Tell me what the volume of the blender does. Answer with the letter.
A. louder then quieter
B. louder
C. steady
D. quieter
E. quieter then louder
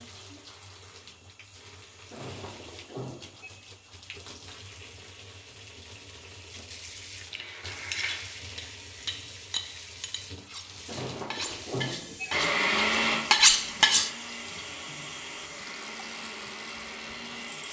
D.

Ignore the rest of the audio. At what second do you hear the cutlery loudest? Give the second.
13 s.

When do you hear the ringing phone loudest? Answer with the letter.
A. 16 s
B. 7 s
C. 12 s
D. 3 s
C.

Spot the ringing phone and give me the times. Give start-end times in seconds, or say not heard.
2.1-3.5, 10.8-12.3.